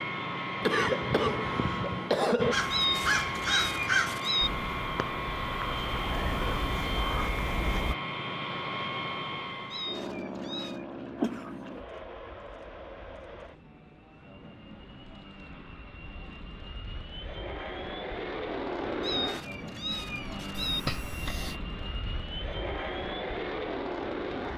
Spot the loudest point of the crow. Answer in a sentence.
The loudest moment of the crow is at 4 seconds.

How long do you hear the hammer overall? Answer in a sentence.
The hammer can't be heard in this clip.